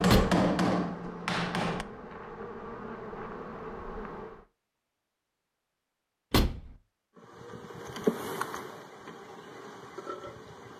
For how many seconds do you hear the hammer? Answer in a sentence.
The hammer can be heard for 2 seconds in total.